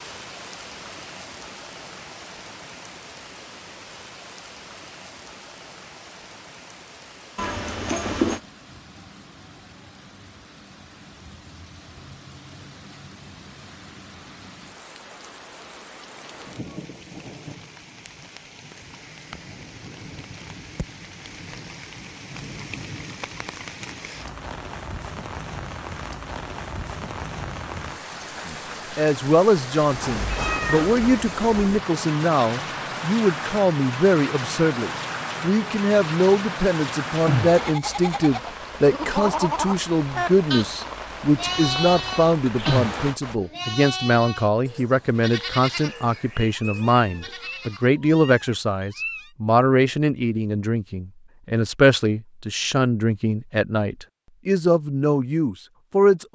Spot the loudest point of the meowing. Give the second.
8 s.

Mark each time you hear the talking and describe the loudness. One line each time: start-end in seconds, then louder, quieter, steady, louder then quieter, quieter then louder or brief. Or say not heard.
28.4-56.3 steady.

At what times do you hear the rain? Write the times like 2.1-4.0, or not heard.
0.0-43.4.